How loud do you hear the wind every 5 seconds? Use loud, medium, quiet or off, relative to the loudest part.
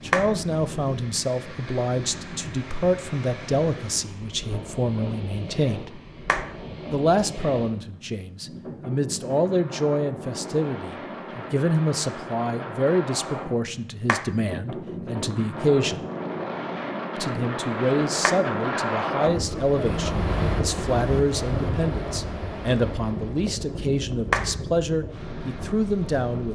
medium, medium, medium, loud, loud, medium.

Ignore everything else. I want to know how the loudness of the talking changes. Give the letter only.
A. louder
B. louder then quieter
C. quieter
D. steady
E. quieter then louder
D.